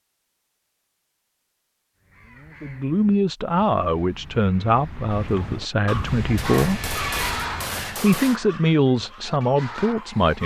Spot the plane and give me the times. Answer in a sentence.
The plane can be heard from 6.0 to 7.8 s.